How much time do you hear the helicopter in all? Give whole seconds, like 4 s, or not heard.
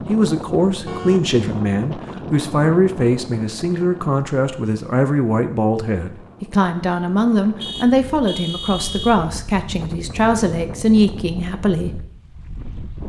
not heard.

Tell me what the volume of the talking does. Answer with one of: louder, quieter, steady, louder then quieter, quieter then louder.
steady.